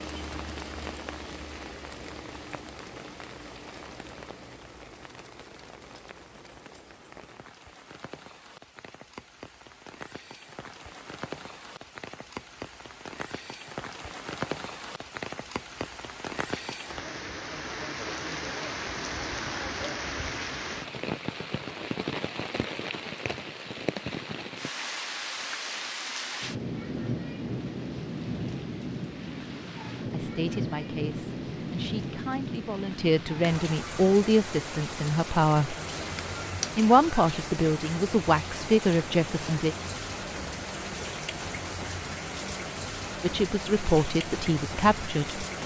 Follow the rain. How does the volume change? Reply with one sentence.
The loudness of the rain goes up.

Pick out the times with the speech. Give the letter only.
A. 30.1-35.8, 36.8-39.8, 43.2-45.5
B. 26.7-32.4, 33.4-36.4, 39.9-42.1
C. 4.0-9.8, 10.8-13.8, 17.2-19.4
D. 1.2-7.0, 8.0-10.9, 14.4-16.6
A.